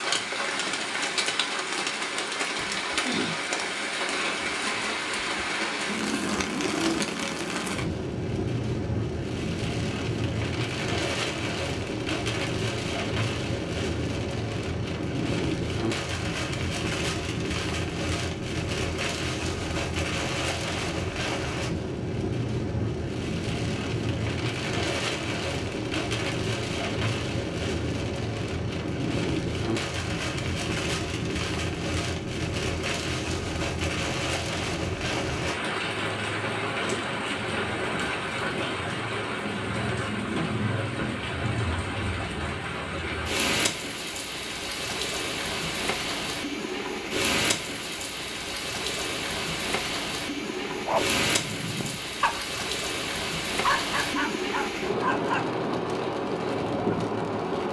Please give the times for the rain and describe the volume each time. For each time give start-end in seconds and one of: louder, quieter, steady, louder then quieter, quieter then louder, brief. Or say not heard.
0.0-57.6 steady.